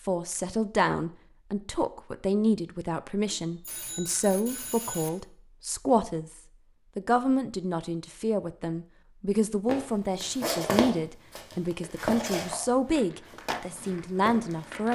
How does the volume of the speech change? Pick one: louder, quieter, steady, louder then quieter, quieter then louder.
steady.